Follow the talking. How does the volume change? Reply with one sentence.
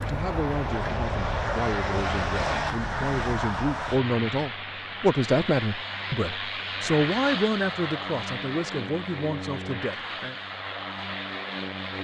The volume of the talking goes up, then down.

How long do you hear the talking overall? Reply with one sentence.
You can hear the talking for 10 seconds altogether.